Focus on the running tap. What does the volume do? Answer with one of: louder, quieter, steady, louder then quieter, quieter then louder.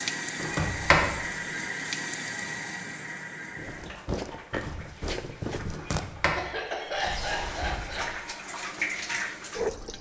quieter then louder.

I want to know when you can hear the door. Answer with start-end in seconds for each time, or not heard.
0.3-1.1, 5.7-8.2.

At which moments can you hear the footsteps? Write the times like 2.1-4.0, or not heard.
3.5-6.0.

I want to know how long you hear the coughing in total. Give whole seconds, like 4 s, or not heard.
2 s.